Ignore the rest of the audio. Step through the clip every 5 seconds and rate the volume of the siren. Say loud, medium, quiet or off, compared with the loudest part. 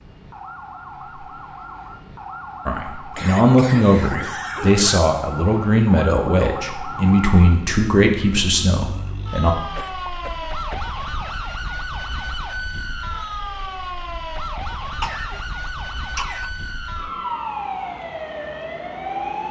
medium, loud, loud, loud.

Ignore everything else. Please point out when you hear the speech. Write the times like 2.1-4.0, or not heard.
2.6-9.6.